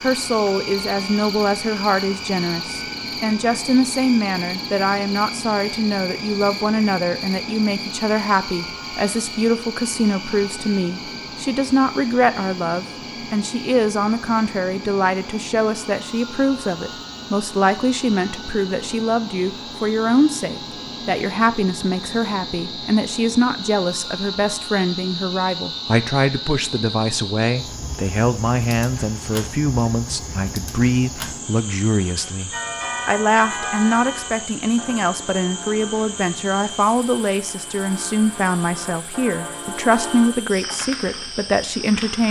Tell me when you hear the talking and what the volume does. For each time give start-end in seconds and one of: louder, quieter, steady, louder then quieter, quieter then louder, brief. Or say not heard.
0.0-42.2 steady.